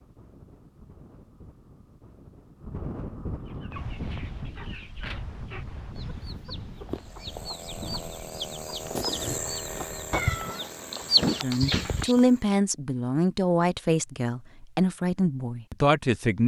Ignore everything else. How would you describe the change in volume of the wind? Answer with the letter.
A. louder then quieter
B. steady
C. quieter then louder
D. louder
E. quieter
A.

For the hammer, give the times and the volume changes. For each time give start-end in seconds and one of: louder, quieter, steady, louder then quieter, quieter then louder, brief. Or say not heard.
not heard.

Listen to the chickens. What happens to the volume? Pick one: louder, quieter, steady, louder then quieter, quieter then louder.
louder.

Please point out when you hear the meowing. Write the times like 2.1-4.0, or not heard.
10.1-12.2.